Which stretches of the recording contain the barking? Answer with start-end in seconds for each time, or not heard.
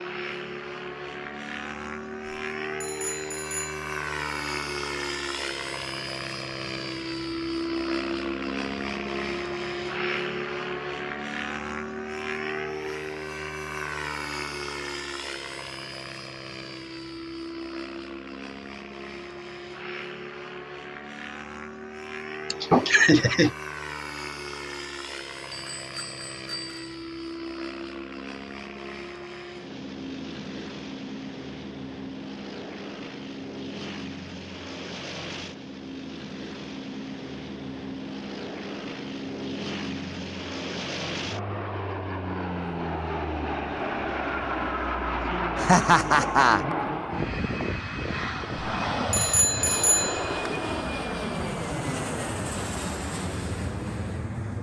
not heard.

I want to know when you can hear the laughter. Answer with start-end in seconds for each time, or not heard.
22.5-23.5, 45.5-46.6.